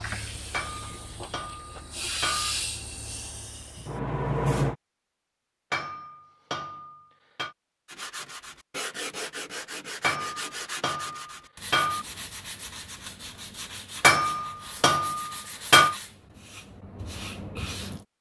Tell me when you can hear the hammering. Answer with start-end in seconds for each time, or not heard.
0.5-2.5, 5.7-7.5, 10.0-12.1, 14.0-15.9.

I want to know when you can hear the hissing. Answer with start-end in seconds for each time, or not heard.
0.0-4.8.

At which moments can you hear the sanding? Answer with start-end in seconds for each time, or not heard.
7.8-18.1.